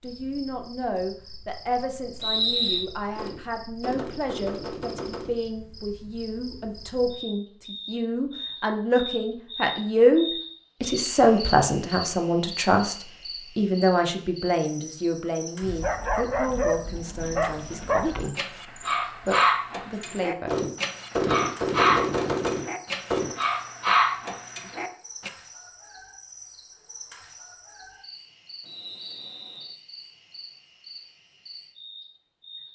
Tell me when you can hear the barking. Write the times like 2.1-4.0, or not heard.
15.6-25.3.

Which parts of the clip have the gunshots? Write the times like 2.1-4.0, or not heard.
3.1-5.4, 20.4-23.4.